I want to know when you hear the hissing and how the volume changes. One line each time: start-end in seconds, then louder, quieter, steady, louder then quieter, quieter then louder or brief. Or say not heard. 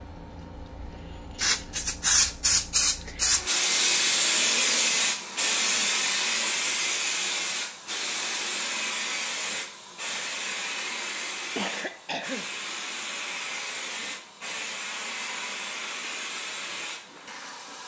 0.0-17.8 quieter.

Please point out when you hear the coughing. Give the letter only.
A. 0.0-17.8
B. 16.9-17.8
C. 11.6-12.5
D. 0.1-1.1
C.